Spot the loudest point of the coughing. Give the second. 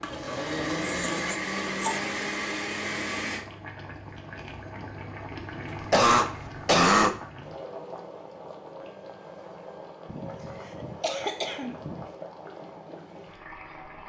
7 s.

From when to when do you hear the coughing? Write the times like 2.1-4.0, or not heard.
0.8-2.0, 5.7-7.2, 10.1-12.1.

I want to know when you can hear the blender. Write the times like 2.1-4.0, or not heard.
0.0-3.5.